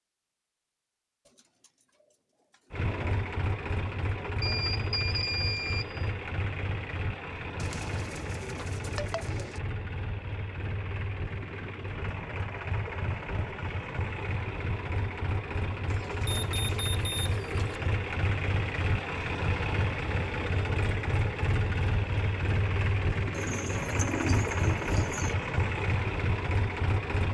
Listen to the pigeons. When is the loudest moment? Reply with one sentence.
The volume of the pigeons peaks at 24 seconds.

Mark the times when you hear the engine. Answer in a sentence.
The engine can be heard from 2.7 to 27.2 s.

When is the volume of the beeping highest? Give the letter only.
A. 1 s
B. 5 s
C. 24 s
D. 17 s
B.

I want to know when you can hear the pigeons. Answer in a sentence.
You can hear the pigeons from 1.2 to 3.2 s, from 7.6 to 9.6 s, from 15.8 to 17.9 s and from 23.3 to 25.4 s.